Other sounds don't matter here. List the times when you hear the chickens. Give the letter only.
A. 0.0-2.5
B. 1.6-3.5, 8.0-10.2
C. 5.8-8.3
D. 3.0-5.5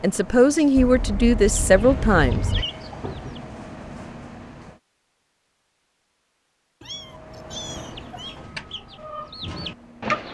B.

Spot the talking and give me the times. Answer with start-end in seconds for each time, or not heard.
0.0-2.5.